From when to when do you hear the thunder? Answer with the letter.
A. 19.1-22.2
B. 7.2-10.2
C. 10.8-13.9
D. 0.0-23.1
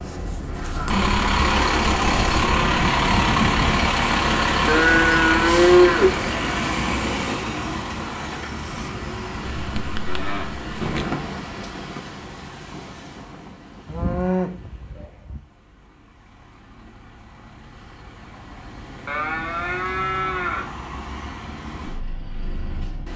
C.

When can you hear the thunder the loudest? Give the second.
11 s.